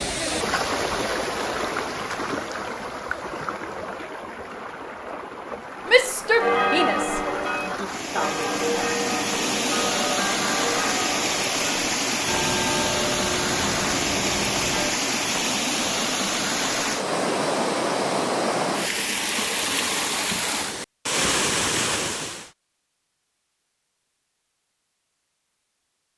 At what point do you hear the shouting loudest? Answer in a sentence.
The volume of the shouting peaks at 6 seconds.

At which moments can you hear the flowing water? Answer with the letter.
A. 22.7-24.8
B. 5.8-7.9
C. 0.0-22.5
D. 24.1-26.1
C.